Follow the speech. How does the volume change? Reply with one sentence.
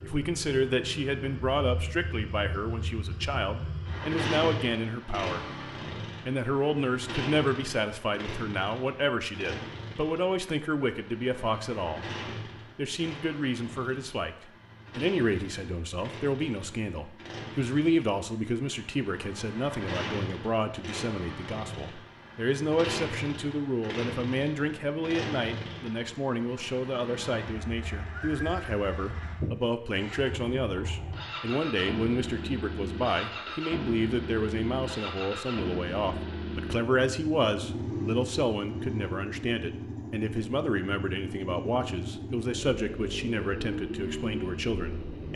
The loudness of the speech stays about the same.